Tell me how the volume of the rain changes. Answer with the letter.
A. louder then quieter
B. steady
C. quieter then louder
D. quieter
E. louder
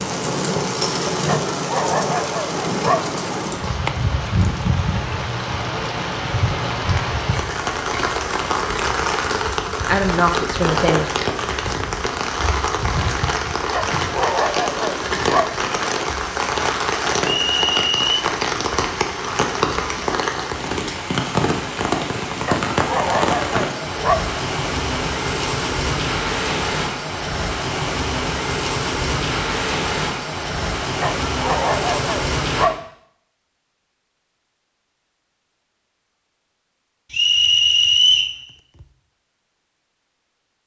B.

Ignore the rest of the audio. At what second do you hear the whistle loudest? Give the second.
38 s.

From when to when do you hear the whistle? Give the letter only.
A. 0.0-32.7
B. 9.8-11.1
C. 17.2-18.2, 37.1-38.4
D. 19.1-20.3
C.